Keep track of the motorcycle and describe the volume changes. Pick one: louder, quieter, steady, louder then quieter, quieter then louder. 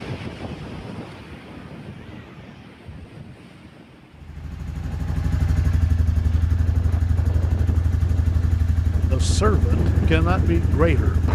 steady.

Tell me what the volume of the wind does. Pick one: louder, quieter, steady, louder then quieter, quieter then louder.
quieter then louder.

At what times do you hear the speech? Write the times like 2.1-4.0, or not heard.
9.1-11.2.